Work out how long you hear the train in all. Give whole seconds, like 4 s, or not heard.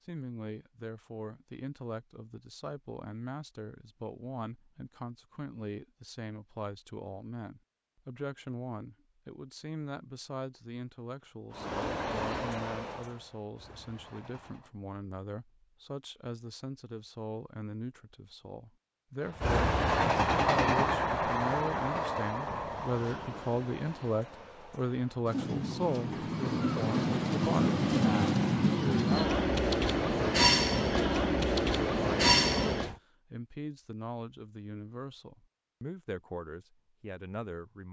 17 s.